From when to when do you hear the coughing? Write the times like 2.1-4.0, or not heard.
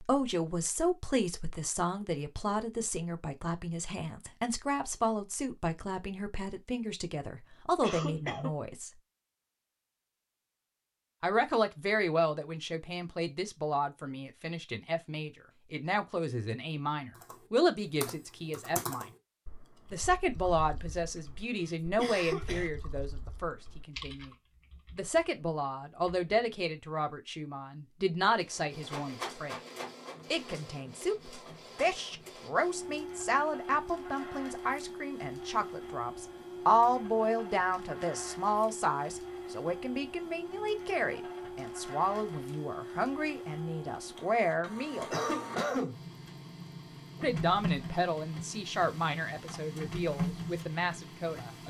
7.8-8.5, 21.9-22.7, 45.0-46.0.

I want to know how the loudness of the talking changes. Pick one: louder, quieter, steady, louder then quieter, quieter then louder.
steady.